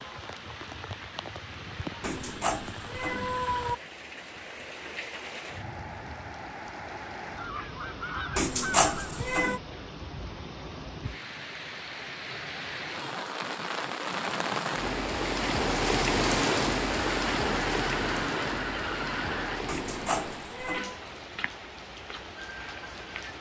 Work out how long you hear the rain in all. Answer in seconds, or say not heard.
23 s.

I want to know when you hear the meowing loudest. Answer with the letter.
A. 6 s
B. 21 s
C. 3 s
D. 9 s
D.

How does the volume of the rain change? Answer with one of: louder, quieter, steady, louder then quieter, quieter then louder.
louder then quieter.